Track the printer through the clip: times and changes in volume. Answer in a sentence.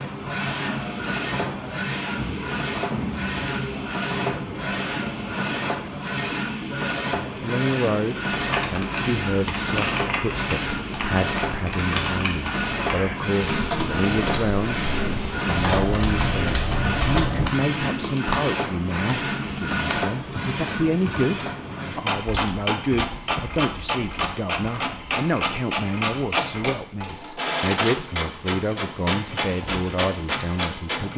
You can hear the printer from 0.0 to 31.1 s, at a steady volume.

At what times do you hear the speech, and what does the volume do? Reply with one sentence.
You can hear the speech from 7.3 to 31.1 s, at a steady volume.